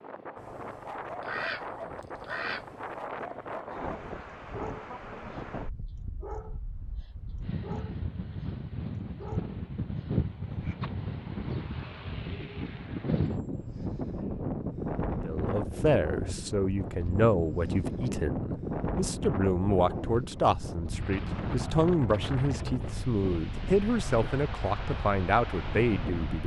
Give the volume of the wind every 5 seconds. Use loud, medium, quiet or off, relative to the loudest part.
medium, medium, loud, loud, loud, loud.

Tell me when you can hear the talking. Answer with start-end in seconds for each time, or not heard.
15.2-26.4.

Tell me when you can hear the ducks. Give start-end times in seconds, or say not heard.
1.2-2.7.